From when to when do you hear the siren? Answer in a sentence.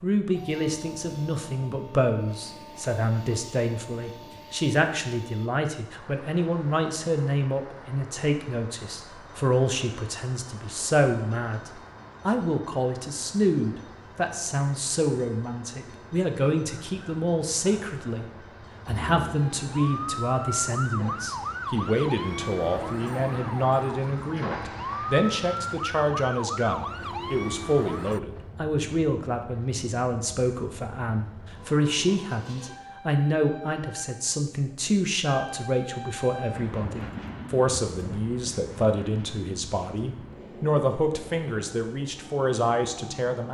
You can hear the siren from 18.9 to 28.2 s.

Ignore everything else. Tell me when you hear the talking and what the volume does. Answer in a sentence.
You can hear the talking from 0.0 to 43.4 s, at a steady volume.